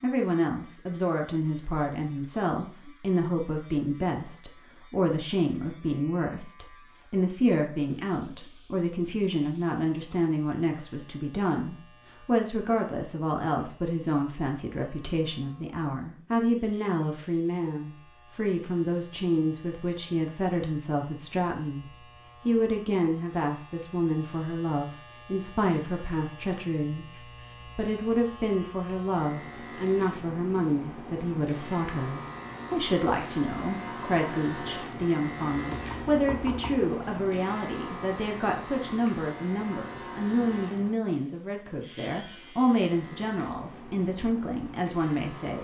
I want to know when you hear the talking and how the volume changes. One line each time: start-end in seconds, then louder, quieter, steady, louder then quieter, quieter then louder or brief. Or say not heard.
0.0-21.9 steady
22.4-45.5 steady.